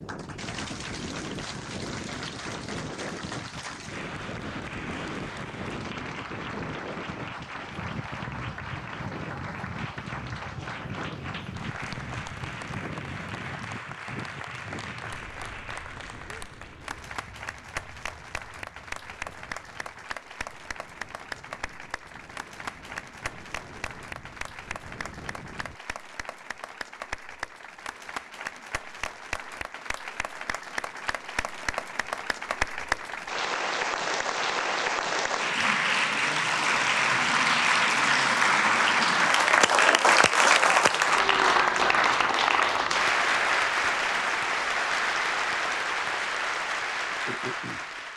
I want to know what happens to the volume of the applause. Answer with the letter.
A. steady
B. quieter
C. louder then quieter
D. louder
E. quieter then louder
D.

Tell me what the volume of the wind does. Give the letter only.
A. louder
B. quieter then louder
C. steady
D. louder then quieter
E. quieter
E.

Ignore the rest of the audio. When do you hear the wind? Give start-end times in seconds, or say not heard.
0.0-25.8.